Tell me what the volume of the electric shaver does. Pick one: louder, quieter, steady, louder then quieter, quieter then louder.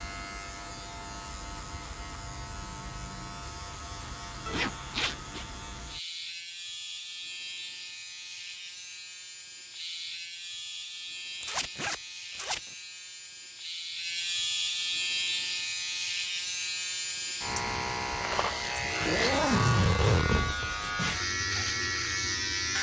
louder.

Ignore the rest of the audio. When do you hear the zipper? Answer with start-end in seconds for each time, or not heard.
4.5-5.5, 11.4-12.6, 19.1-20.7.